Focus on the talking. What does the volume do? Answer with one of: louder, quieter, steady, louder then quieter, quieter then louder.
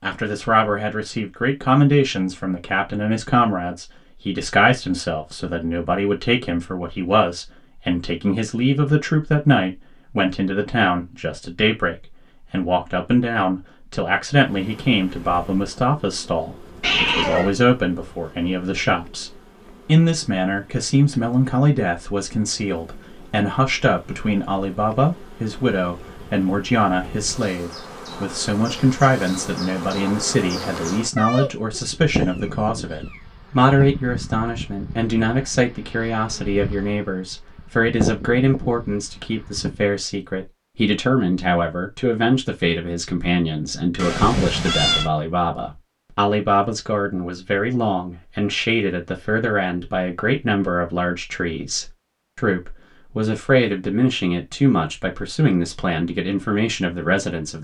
steady.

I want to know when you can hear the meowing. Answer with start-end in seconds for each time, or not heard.
16.8-17.6, 31.1-33.9, 44.0-45.1.